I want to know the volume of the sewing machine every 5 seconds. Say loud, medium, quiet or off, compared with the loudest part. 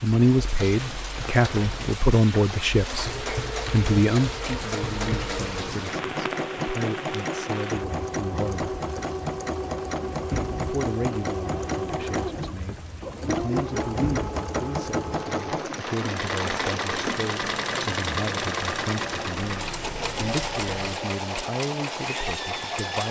medium, loud, loud, loud, loud.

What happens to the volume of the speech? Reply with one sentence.
The loudness of the speech goes down.